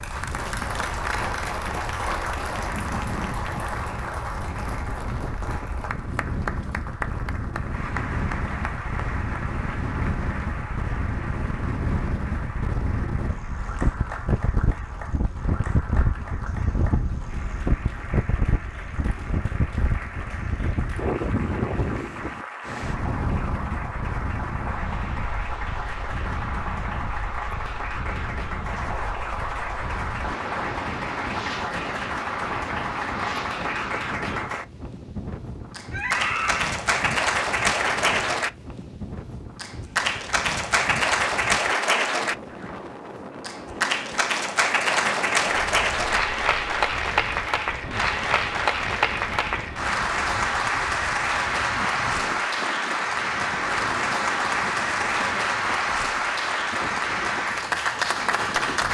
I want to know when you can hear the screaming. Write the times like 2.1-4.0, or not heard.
35.9-36.8.